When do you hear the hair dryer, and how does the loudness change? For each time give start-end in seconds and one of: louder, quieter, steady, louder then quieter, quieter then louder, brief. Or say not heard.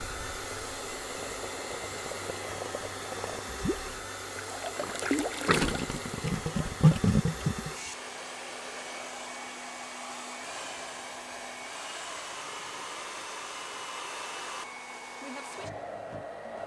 0.0-16.6 steady.